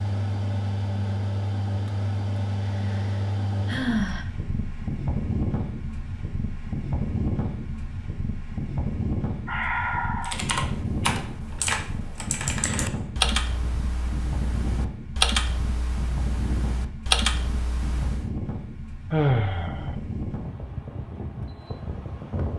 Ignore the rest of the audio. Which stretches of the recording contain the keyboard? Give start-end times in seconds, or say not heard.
10.2-18.3.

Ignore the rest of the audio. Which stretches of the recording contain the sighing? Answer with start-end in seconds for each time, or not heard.
2.5-4.2, 9.4-10.4, 19.1-19.9.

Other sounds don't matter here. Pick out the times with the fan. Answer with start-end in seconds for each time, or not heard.
0.0-22.5.